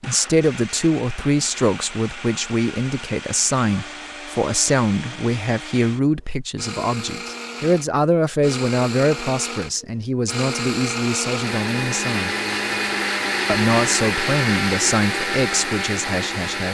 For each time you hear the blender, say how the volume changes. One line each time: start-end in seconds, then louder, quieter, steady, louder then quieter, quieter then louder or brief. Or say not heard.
0.0-16.6 louder.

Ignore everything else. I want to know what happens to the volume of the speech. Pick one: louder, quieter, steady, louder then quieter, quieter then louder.
steady.